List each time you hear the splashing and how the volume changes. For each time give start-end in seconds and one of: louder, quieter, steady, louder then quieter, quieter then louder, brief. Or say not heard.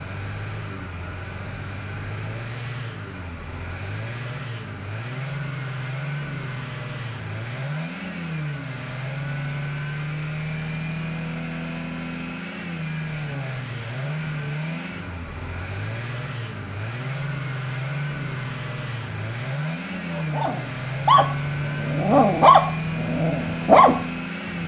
not heard.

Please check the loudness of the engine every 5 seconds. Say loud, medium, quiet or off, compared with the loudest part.
medium, loud, loud, loud, loud.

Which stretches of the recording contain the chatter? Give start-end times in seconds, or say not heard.
not heard.